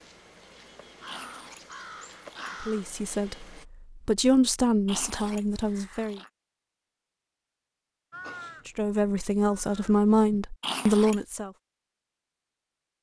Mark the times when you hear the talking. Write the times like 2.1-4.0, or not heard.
2.6-6.2, 8.7-11.5.